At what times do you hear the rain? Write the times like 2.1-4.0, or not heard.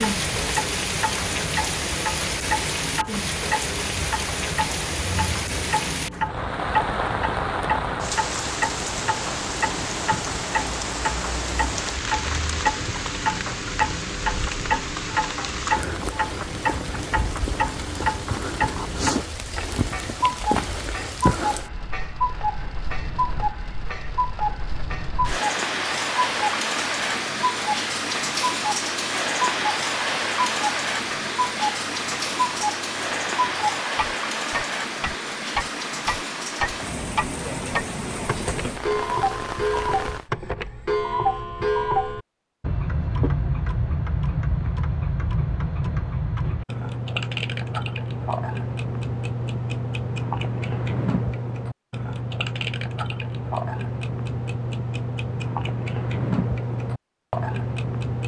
0.0-40.3.